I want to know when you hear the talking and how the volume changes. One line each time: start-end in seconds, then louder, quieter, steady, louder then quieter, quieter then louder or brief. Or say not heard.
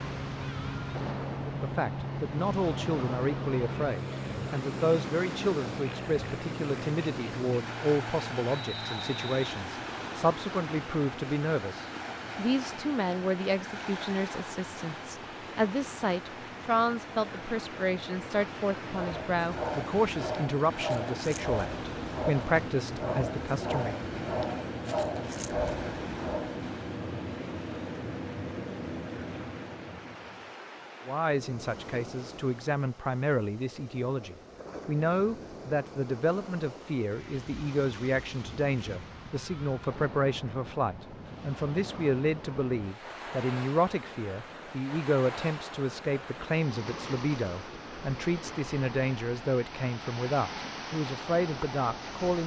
1.4-24.0 steady
31.1-52.4 steady.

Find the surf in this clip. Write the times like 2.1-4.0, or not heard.
0.0-52.4.